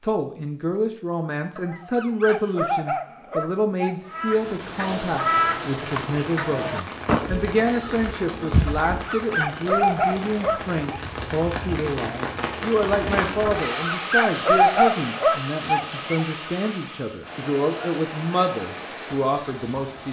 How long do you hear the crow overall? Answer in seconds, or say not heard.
5 s.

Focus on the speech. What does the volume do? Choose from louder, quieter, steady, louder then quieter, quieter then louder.
steady.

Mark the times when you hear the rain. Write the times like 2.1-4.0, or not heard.
4.7-20.0.